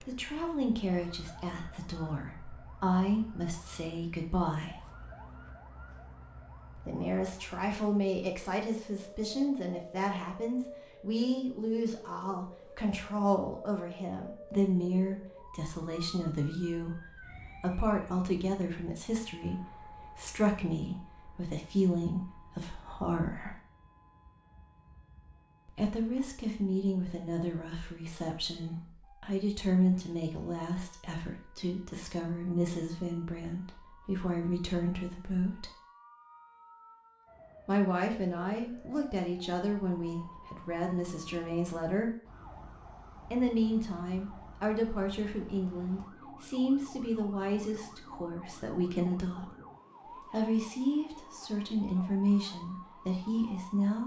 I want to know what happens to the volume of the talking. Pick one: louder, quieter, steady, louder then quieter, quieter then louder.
steady.